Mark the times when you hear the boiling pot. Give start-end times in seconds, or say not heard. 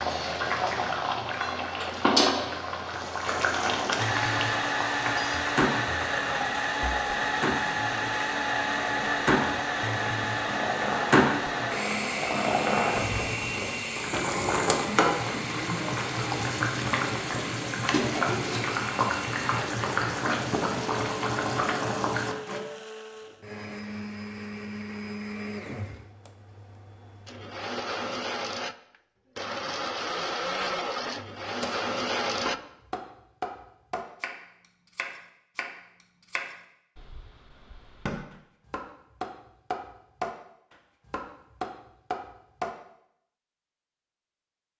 0.0-22.6.